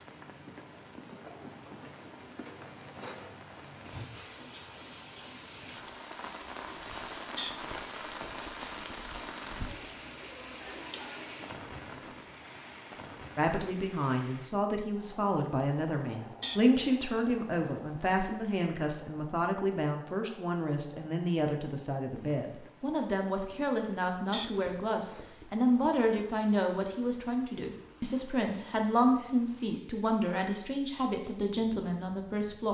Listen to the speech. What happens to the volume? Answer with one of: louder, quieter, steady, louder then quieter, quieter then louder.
steady.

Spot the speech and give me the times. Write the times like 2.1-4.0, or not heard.
13.3-32.6.